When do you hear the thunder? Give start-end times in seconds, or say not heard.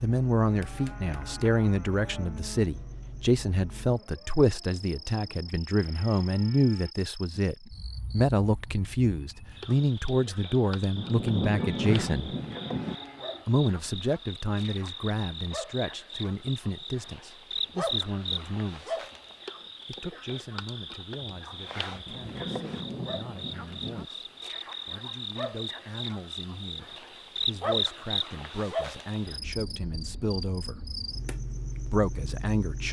10.9-12.9, 22.1-24.1.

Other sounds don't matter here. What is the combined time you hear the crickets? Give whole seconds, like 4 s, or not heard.
33 s.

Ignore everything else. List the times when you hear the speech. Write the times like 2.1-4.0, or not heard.
0.0-12.3, 13.4-19.1, 19.9-24.2, 24.9-30.8, 31.9-32.8.